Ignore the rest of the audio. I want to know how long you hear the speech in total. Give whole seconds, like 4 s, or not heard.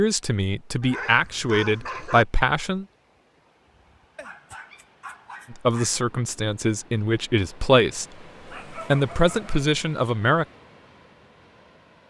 7 s.